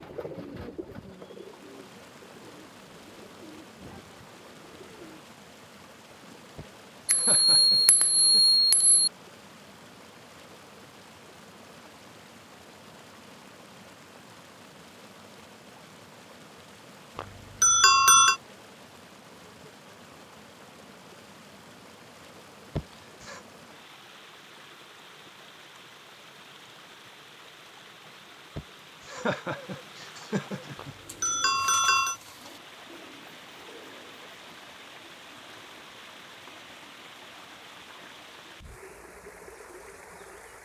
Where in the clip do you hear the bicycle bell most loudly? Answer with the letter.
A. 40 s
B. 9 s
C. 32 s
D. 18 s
D.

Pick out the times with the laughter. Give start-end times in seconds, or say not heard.
6.5-8.4, 22.8-23.4, 28.6-30.9.